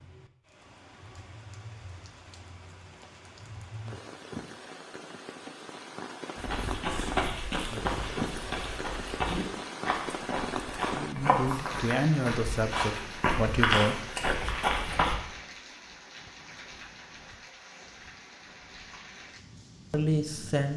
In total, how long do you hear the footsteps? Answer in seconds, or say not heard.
9 s.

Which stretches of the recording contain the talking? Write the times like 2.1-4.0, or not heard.
10.9-14.2, 19.9-20.7.